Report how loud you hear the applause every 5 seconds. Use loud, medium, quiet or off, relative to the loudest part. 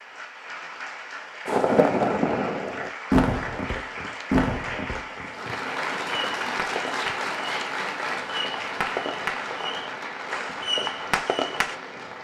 medium, loud, medium.